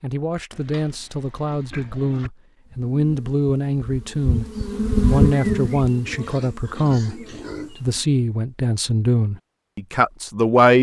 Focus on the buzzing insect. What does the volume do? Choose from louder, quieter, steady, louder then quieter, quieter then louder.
louder then quieter.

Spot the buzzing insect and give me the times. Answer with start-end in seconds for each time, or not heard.
2.6-8.2.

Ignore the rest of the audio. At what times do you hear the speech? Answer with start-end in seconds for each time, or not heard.
0.0-4.5, 5.0-7.2, 7.8-10.7.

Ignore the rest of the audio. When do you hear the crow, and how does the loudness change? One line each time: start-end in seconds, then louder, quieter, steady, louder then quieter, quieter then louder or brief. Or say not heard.
not heard.